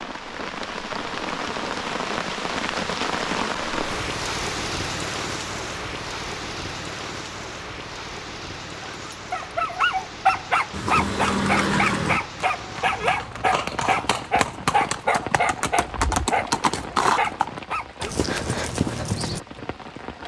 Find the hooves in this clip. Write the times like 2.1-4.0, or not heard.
10.7-19.4.